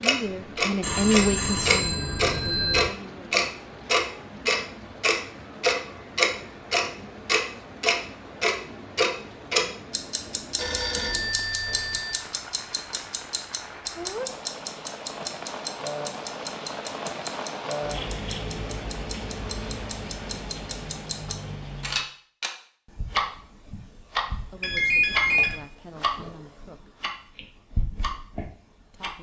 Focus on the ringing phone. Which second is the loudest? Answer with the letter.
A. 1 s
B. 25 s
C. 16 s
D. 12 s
B.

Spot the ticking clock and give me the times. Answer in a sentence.
You can hear the ticking clock from 0.0 to 29.1 s.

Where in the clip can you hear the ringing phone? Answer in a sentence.
You can hear the ringing phone from 0.8 to 2.9 s, from 10.6 to 12.2 s and from 24.6 to 25.6 s.